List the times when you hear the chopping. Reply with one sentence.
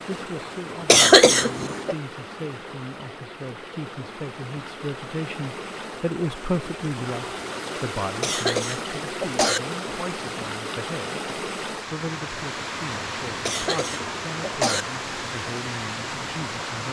The chopping can't be heard in this clip.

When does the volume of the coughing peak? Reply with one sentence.
The loudest moment of the coughing is at 1 second.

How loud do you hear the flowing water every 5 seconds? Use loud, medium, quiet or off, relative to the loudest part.
medium, loud, loud, loud.